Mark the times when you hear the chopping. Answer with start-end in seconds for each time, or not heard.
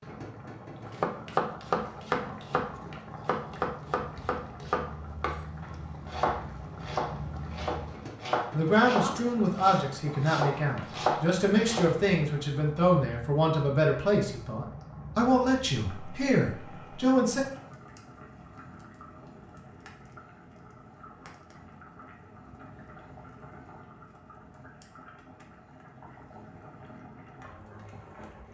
0.9-12.2.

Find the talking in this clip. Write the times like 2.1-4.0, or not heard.
8.5-17.4.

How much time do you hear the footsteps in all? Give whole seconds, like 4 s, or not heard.
not heard.